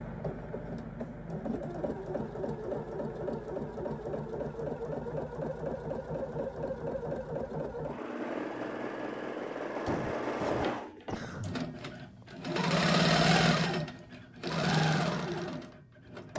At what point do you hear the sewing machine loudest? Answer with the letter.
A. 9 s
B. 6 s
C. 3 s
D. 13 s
D.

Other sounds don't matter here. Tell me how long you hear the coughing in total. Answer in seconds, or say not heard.
2 s.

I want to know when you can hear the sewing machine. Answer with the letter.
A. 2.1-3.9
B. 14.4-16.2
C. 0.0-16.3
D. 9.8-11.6
C.